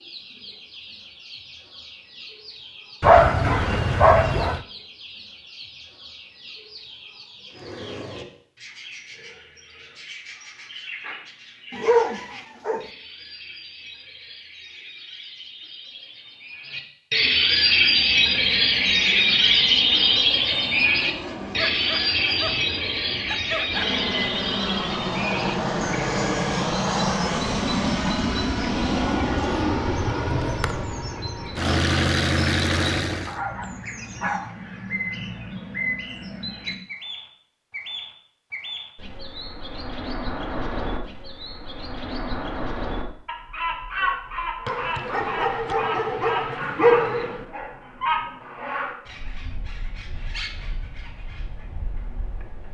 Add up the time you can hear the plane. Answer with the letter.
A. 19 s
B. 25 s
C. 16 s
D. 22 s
C.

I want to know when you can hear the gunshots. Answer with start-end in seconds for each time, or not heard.
not heard.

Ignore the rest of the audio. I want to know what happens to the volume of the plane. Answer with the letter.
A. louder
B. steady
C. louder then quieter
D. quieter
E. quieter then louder
A.